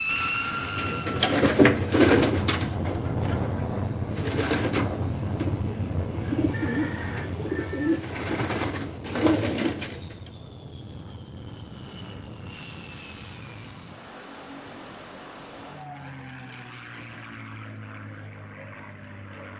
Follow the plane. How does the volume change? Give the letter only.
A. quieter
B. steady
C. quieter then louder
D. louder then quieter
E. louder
A.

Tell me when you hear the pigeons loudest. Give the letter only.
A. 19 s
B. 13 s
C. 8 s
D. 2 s
D.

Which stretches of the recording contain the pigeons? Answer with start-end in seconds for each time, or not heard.
0.8-10.2.